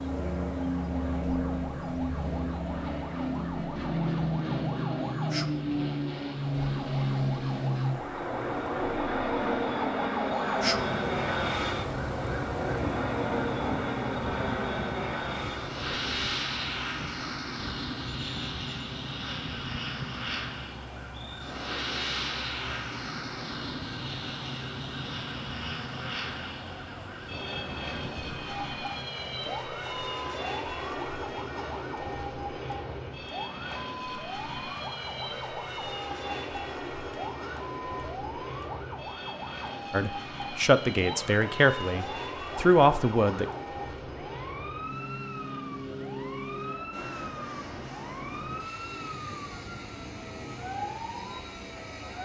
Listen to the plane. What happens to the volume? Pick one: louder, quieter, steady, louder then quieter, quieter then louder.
quieter.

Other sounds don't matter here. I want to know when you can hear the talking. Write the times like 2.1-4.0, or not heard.
39.9-43.5.